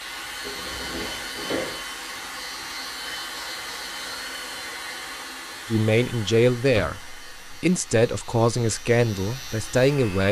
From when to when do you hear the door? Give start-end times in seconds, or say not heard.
0.4-1.8, 6.7-7.6.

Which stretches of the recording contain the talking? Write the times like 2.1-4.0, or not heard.
5.7-10.2.